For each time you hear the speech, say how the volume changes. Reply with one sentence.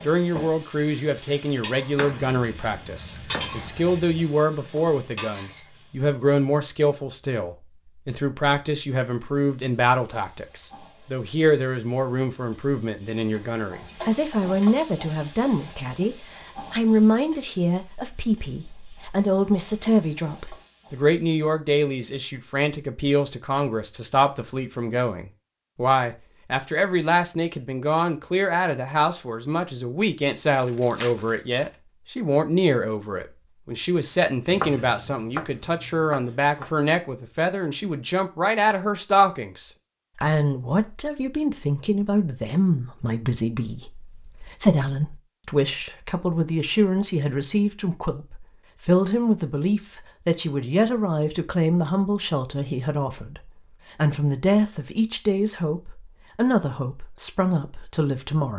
The speech can be heard from 0.1 to 58.5 s, at a steady volume.